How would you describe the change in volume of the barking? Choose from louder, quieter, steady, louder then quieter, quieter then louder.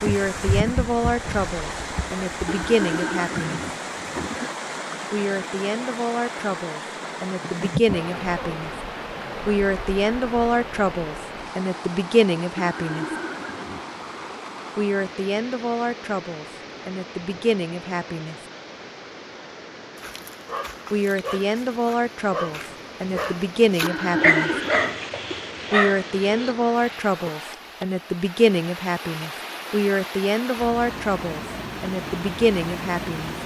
louder.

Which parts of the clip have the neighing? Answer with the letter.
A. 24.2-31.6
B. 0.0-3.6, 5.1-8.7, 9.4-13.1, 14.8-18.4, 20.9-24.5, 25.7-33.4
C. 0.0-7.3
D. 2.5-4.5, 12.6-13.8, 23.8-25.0
D.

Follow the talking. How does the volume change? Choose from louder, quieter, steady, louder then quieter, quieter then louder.
steady.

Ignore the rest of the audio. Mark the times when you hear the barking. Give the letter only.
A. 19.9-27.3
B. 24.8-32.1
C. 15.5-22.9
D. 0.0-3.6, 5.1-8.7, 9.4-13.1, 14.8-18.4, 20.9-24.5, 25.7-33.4
A.